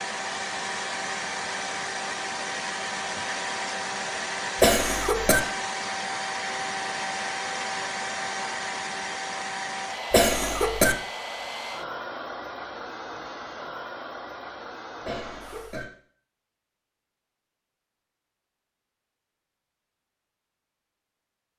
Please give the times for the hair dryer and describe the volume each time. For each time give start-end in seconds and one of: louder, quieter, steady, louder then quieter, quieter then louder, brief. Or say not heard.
0.0-15.8 quieter.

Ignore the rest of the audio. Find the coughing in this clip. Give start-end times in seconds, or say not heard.
4.6-5.4, 10.1-10.9, 15.0-15.8.